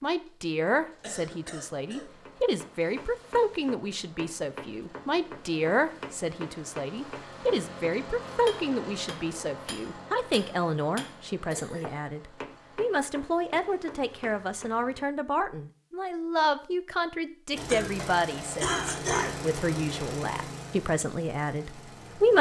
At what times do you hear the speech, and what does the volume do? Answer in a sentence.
You can hear the speech from 0.0 to 22.3 s, at a steady volume.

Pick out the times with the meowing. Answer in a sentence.
The meowing can't be heard in this clip.